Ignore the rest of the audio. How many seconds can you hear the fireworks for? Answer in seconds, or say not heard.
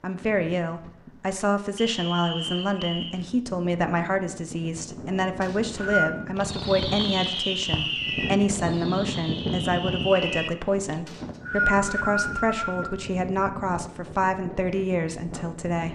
5 s.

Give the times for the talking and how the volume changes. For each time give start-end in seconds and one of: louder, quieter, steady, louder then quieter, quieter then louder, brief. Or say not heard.
0.0-15.8 steady.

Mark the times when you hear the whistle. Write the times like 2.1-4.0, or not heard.
1.8-3.2, 5.4-6.2, 11.1-12.9.